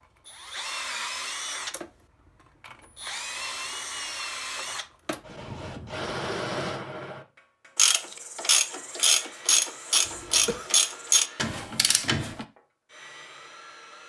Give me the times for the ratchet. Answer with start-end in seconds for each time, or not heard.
7.8-12.4.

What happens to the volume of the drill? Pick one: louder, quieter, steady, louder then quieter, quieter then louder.
quieter.